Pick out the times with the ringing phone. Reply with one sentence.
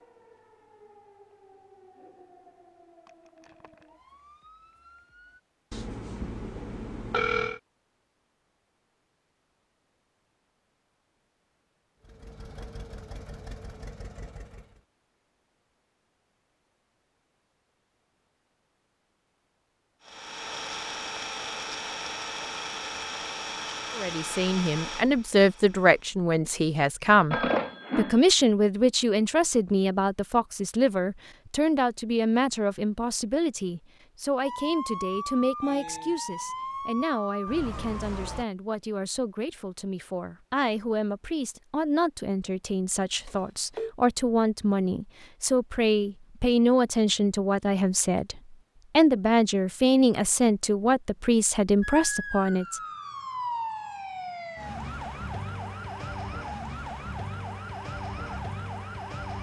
The ringing phone can be heard from 5.7 to 7.6 s, from 27.3 to 28.2 s and from 43.2 to 44.0 s.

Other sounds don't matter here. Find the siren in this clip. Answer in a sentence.
The siren can be heard from 0.0 to 5.4 s, from 34.4 to 38.5 s and from 51.8 to 59.3 s.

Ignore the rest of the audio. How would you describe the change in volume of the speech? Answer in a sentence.
The loudness of the speech goes down, then up.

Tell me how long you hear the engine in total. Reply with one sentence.
You can hear the engine for 9 seconds altogether.